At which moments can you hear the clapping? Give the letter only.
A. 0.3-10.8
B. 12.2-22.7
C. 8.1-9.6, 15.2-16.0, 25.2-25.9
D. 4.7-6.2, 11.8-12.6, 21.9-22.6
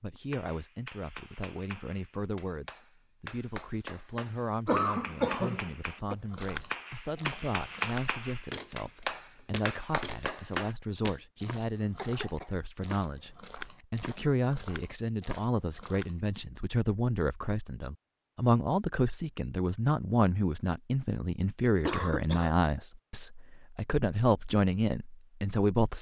A.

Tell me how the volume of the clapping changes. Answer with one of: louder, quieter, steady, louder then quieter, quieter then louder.
louder.